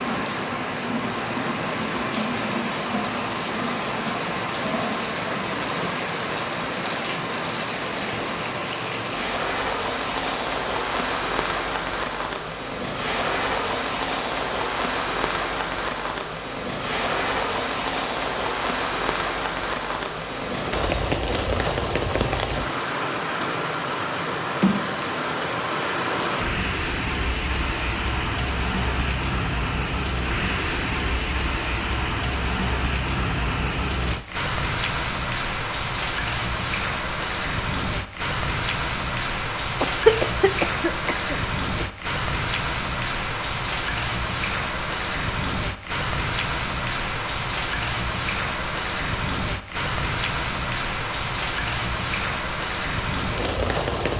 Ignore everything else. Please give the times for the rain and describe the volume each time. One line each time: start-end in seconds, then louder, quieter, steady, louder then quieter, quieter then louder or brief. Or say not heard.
0.0-54.1 steady.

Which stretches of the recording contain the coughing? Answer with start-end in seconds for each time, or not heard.
39.8-41.9.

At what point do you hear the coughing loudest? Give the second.
40 s.